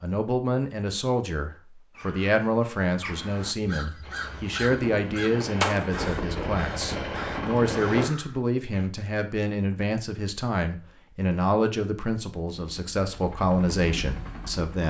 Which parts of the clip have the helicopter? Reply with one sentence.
The helicopter can be heard from 4.0 to 8.1 s and from 12.4 to 14.8 s.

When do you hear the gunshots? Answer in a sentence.
You can hear the gunshots from 4.7 to 6.7 s.